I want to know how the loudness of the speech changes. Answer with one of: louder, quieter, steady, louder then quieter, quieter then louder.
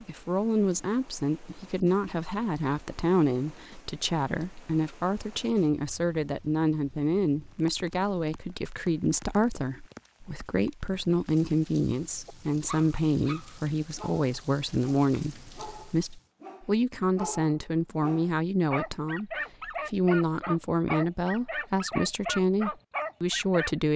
steady.